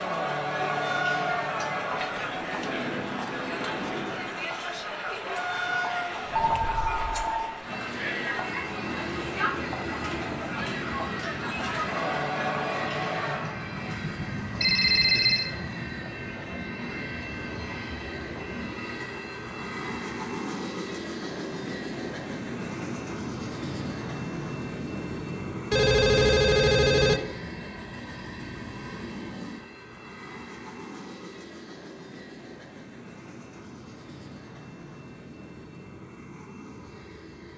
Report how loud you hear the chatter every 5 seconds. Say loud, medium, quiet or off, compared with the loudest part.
loud, loud, loud, quiet, off, off, off, off.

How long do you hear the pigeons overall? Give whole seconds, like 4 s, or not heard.
not heard.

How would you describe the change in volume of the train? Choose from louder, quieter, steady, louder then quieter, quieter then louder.
quieter.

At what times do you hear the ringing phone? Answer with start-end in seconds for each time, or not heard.
5.3-7.5, 14.6-15.5, 25.7-27.2.